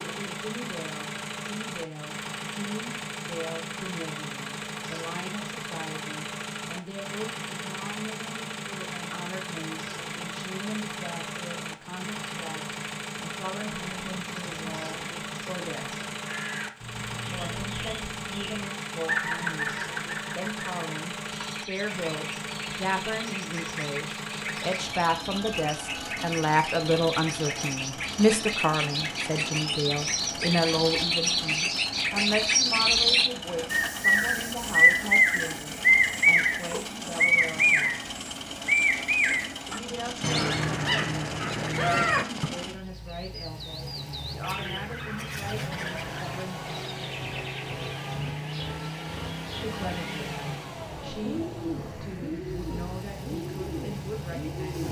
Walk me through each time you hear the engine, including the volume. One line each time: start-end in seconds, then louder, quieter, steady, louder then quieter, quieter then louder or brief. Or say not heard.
0.0-54.8 steady.